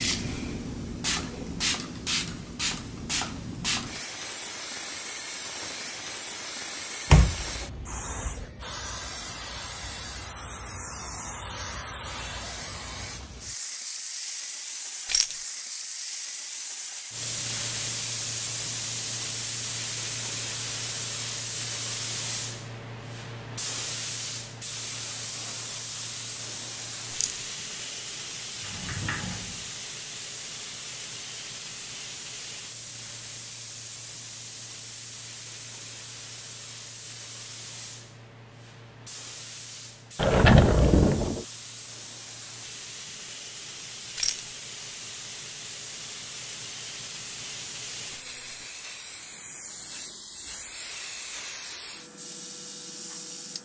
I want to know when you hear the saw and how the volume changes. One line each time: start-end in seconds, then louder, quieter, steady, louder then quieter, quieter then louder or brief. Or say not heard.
not heard.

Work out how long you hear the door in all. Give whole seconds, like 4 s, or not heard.
4 s.